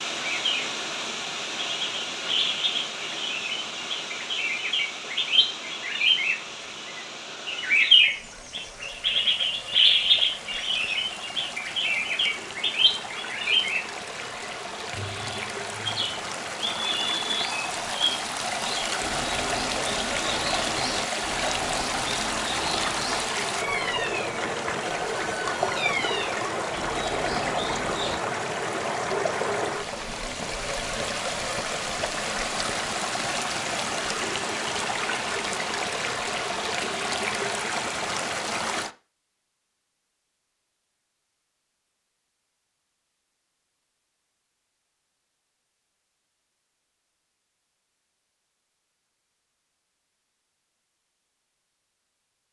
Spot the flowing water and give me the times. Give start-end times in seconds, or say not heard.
0.0-39.0.